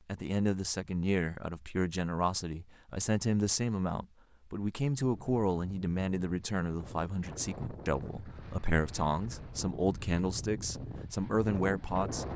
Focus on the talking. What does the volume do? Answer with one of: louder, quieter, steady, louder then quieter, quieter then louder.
steady.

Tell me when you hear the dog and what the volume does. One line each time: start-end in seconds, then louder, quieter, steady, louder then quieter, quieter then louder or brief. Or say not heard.
not heard.